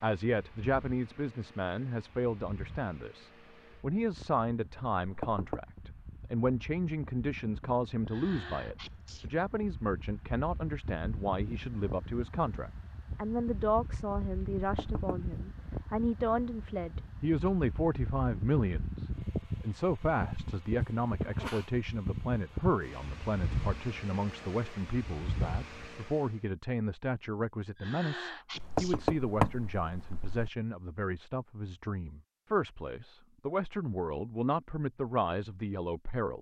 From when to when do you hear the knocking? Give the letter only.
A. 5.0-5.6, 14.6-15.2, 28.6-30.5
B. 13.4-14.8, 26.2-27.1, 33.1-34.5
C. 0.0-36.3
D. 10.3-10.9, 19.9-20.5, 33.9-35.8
A.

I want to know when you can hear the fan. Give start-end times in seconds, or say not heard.
0.1-26.4.